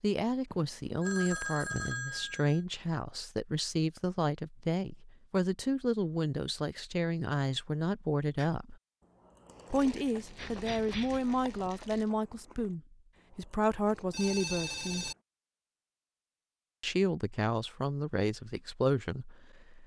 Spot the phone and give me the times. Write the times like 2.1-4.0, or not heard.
0.5-2.6, 10.3-11.2, 14.1-15.2.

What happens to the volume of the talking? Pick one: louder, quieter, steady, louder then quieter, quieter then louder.
steady.